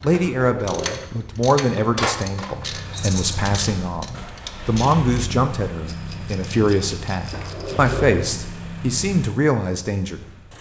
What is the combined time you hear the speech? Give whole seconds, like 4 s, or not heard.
10 s.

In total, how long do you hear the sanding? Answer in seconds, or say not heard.
not heard.